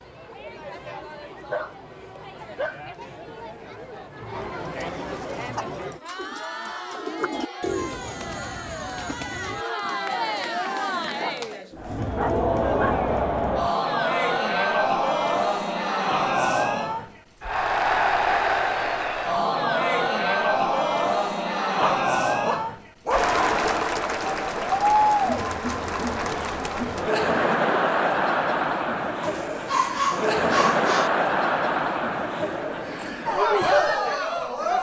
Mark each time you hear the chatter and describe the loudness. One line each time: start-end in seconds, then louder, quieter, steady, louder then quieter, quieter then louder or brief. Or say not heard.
0.0-34.7 louder.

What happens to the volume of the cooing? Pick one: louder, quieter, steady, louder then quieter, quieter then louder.
louder then quieter.